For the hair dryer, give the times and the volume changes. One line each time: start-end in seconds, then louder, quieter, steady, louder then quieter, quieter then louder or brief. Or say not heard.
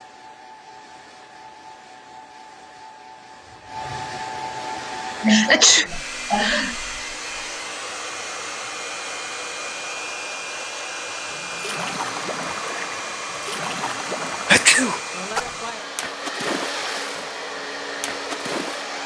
0.0-19.0 louder.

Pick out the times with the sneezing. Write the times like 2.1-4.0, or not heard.
5.2-6.8, 14.4-15.0.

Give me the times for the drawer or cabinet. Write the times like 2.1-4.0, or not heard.
not heard.